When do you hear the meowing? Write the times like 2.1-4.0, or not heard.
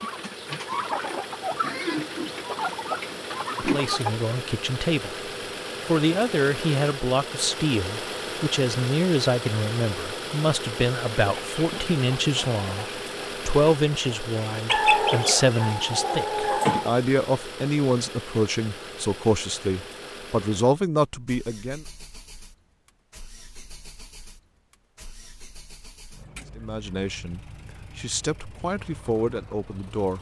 not heard.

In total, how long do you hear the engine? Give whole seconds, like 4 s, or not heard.
30 s.